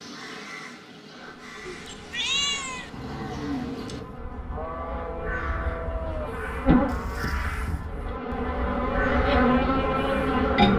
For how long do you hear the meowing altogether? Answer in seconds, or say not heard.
2 s.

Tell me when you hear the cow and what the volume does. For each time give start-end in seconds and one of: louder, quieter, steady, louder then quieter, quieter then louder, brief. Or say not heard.
2.9-7.5 quieter.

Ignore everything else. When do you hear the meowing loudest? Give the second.
2 s.